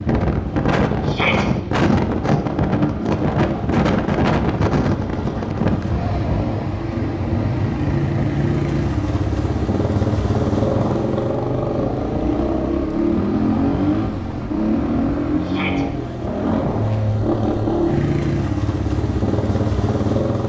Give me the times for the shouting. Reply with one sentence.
The shouting can be heard from 1.0 to 1.4 s and from 15.4 to 15.8 s.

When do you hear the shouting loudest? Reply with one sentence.
The loudest moment of the shouting is at 1 second.